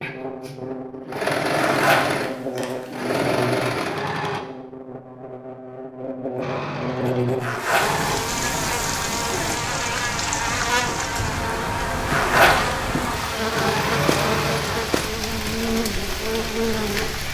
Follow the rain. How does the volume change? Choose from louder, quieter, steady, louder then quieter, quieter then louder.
steady.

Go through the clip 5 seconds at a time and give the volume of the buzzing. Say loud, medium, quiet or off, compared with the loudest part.
medium, loud, loud, loud.